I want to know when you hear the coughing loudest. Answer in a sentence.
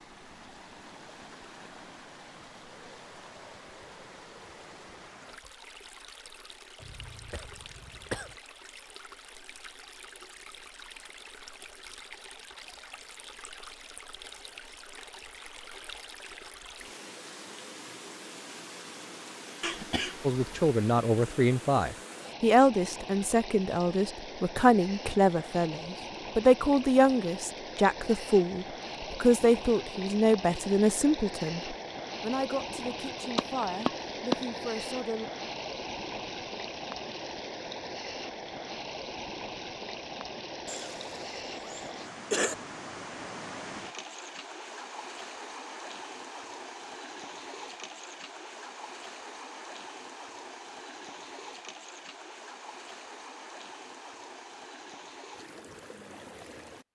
The loudest moment of the coughing is at 42 seconds.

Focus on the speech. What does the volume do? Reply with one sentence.
The volume of the speech goes down.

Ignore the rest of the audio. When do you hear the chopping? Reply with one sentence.
The chopping can be heard from 33.4 to 34.4 s.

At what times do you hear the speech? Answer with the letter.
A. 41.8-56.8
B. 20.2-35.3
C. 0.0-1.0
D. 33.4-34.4
B.